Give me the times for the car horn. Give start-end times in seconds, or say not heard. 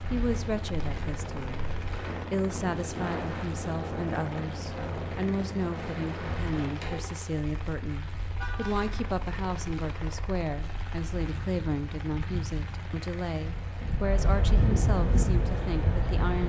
8.3-8.9.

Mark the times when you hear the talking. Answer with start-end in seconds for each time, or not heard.
0.1-16.4.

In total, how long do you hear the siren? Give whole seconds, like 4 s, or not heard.
not heard.